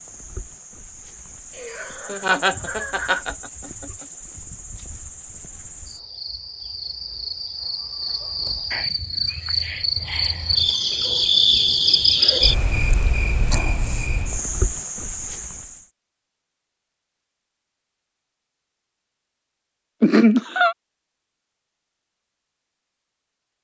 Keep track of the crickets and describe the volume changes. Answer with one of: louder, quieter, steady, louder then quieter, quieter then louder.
louder then quieter.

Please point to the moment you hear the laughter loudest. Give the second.
20 s.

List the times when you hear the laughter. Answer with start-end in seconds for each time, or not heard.
1.6-3.9, 20.0-20.8.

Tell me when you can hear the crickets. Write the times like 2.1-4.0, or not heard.
0.0-15.8.